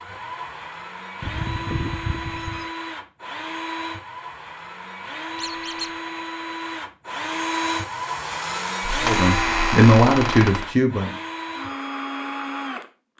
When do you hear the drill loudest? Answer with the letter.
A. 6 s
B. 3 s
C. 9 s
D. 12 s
C.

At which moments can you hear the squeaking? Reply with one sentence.
The squeaking can be heard from 1.2 to 2.7 s, from 5.3 to 5.9 s and from 8.8 to 10.7 s.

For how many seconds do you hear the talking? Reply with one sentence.
The talking can be heard for 2 seconds in total.